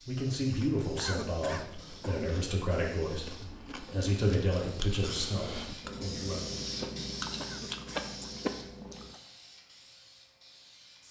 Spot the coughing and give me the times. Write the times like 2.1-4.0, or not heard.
0.9-2.2, 7.3-8.1.